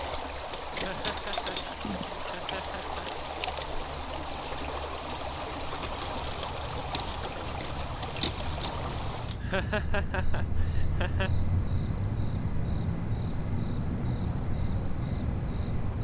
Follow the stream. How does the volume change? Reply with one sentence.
The volume of the stream stays about the same.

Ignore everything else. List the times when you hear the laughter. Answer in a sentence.
You can hear the laughter from 0.7 to 3.1 s and from 9.4 to 11.3 s.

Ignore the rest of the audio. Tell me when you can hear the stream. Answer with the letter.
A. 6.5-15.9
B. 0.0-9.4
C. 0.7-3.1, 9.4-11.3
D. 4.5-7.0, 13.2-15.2
B.